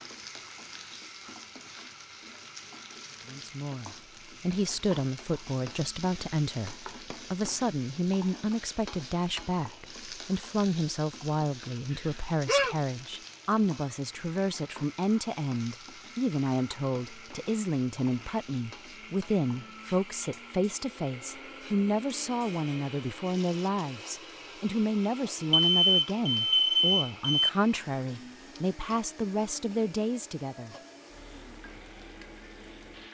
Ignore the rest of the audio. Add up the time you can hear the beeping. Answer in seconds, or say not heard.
3 s.